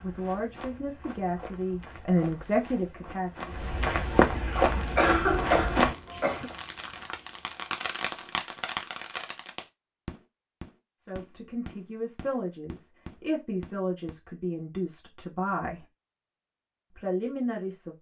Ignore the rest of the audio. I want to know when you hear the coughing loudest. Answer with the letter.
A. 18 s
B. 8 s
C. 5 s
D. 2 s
C.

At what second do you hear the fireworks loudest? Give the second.
8 s.